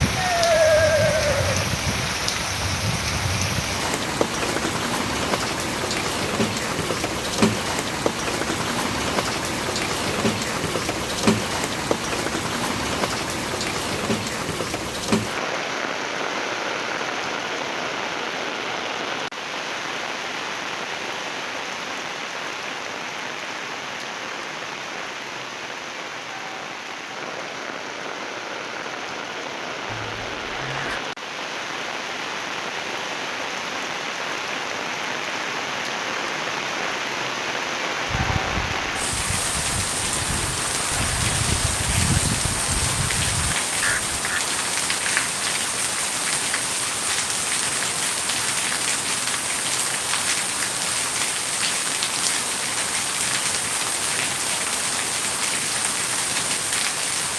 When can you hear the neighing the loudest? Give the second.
1 s.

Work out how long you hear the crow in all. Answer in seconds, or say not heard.
6 s.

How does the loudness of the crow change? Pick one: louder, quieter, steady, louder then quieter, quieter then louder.
louder.